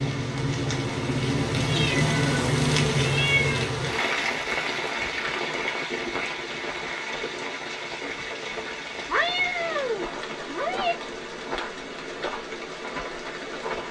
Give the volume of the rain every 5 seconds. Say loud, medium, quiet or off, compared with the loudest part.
loud, medium, medium.